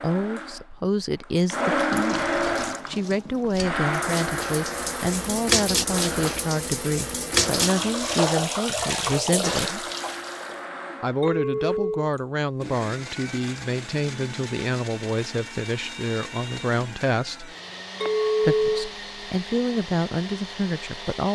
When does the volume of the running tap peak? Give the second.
8 s.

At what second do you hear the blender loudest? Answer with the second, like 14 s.
2 s.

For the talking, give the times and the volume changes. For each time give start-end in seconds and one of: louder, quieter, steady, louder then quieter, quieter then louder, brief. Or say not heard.
0.0-9.8 steady
11.0-17.6 steady
18.4-21.2 brief.